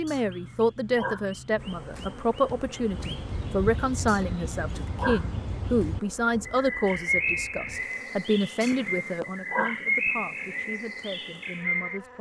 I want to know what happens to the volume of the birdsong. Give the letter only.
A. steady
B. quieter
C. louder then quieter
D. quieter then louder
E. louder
E.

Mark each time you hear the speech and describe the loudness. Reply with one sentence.
The speech can be heard from 0.0 to 12.1 s, getting quieter.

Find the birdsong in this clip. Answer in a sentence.
You can hear the birdsong from 0.0 to 12.0 s.